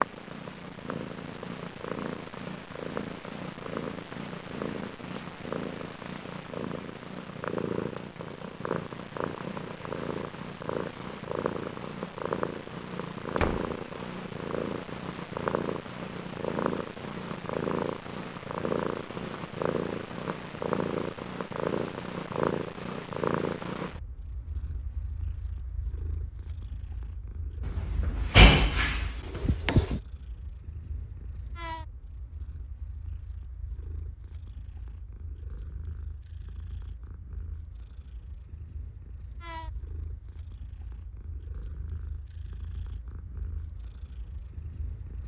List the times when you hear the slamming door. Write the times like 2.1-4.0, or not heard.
13.3-13.8, 27.6-30.0.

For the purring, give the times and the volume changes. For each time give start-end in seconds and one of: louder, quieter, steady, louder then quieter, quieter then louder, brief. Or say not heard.
0.0-45.2 quieter.